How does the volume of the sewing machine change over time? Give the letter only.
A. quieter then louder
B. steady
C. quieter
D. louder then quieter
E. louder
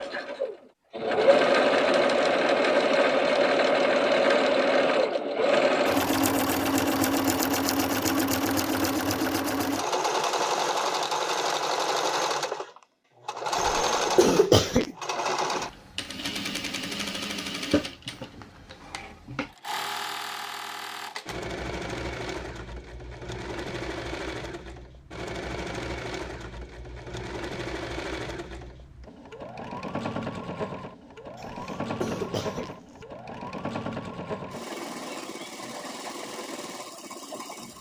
C.